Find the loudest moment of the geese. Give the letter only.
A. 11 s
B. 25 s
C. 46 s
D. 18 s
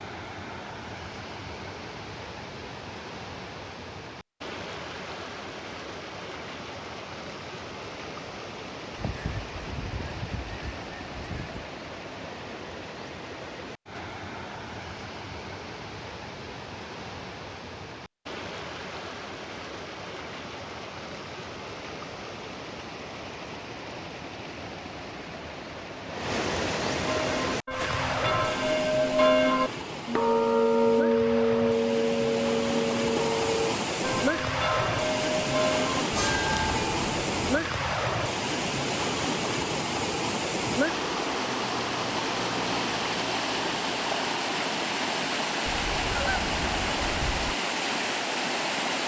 C.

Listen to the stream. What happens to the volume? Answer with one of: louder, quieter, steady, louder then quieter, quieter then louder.
louder.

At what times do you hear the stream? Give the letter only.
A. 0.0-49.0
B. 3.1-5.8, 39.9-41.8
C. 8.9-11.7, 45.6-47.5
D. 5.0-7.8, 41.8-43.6
A.